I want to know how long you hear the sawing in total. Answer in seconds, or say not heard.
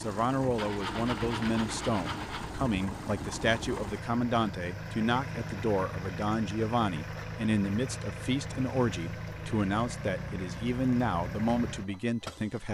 2 s.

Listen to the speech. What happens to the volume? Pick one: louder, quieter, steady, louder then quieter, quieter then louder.
steady.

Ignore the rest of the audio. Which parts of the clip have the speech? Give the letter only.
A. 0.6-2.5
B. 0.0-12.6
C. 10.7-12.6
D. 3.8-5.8
B.